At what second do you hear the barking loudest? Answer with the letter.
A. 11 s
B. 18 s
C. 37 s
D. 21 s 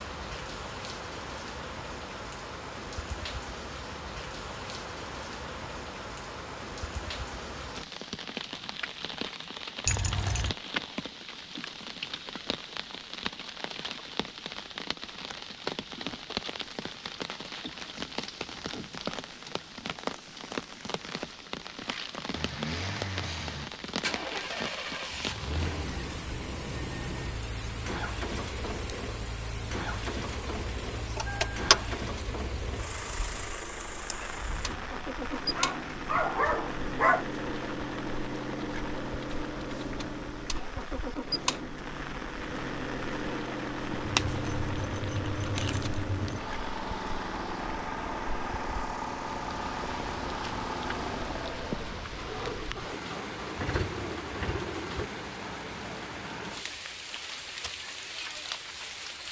C.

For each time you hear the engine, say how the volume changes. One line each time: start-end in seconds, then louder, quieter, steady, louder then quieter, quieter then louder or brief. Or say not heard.
22.3-55.1 steady.